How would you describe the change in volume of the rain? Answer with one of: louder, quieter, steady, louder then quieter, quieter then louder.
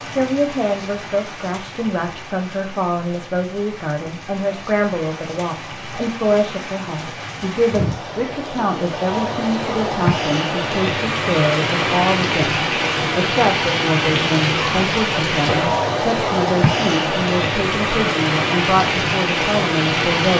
louder.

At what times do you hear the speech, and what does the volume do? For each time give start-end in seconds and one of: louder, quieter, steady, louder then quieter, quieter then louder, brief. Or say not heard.
0.0-12.6 steady
13.2-20.3 steady.